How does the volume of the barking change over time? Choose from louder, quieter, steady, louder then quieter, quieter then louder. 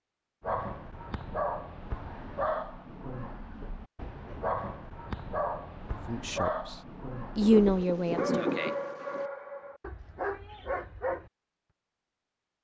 steady.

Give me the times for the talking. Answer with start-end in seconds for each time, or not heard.
6.0-6.8, 7.3-8.4.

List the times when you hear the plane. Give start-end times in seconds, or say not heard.
not heard.